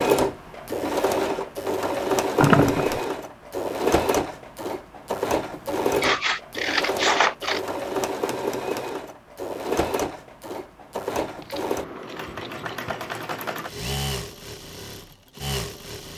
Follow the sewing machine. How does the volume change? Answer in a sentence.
The volume of the sewing machine goes down.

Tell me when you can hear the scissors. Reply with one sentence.
You can hear the scissors from 2.4 to 3.0 s, from 6.0 to 7.6 s and from 11.2 to 12.7 s.